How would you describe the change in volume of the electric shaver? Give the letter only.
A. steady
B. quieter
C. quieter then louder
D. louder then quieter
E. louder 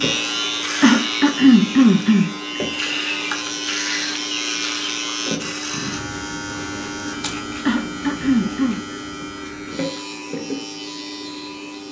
B.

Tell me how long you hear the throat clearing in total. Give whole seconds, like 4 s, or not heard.
3 s.